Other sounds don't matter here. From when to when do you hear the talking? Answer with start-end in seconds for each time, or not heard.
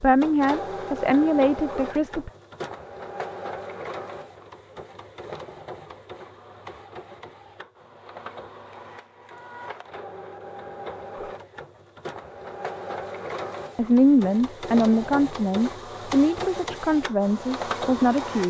0.0-2.3, 13.8-18.4.